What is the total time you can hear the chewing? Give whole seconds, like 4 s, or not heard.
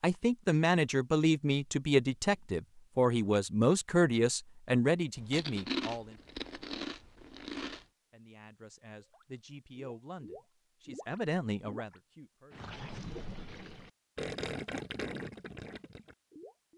3 s.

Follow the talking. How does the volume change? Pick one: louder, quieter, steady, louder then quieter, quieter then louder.
quieter then louder.